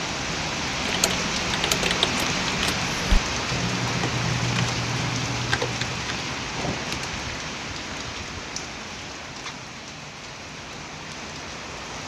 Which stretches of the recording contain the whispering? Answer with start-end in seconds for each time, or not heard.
not heard.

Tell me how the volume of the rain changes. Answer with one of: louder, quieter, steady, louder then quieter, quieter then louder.
quieter.